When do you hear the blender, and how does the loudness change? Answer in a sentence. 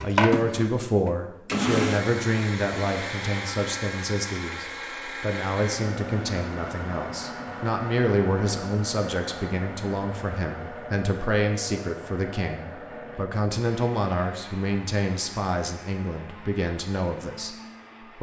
You can hear the blender from 0.0 to 18.1 s, getting quieter.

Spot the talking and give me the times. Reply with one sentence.
The talking can be heard from 0.0 to 17.6 s.